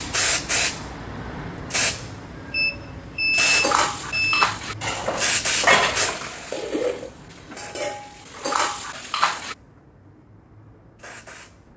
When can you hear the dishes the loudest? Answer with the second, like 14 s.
6 s.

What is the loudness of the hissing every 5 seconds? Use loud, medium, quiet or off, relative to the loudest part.
loud, loud, quiet.